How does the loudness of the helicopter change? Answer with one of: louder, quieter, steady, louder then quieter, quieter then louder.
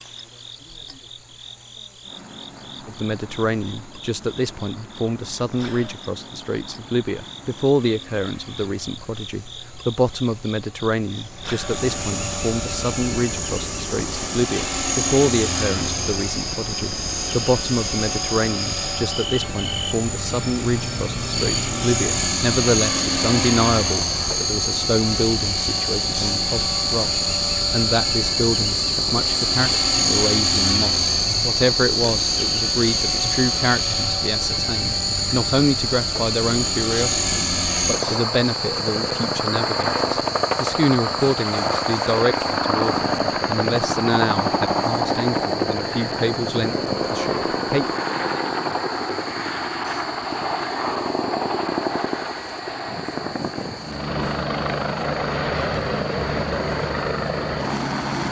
louder.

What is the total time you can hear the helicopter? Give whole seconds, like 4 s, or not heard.
56 s.